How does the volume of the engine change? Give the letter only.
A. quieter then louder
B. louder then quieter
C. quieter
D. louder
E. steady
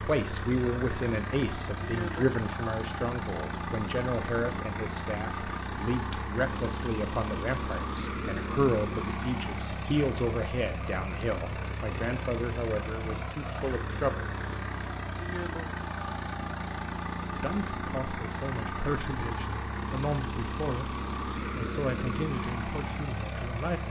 E.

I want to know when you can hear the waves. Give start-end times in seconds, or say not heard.
not heard.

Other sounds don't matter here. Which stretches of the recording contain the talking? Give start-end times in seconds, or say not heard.
0.0-14.2, 17.3-23.8.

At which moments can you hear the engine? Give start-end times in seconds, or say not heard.
0.0-23.8.